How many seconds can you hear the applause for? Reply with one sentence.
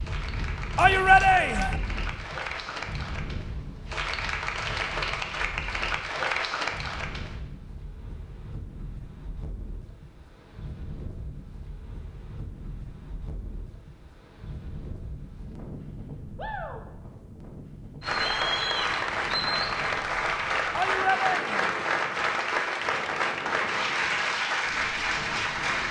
The applause can be heard for 15 seconds in total.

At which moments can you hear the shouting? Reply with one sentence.
You can hear the shouting from 0.8 to 1.8 s and from 20.7 to 21.8 s.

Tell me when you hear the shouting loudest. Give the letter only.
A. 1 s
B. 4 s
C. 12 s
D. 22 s
A.